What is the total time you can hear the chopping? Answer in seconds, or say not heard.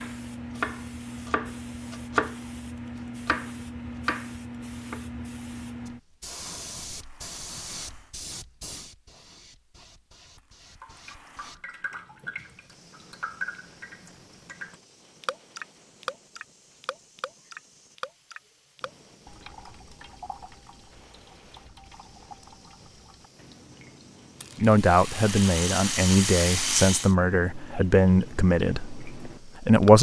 4 s.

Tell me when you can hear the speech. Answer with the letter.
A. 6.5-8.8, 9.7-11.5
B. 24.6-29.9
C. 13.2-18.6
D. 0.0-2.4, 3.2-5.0
B.